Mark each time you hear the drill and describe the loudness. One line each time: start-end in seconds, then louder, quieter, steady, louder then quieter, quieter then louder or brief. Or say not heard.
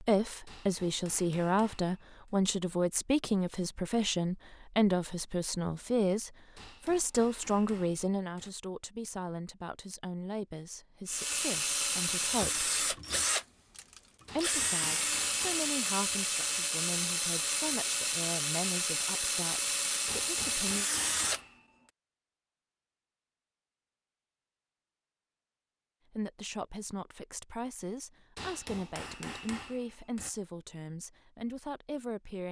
11.1-21.4 steady.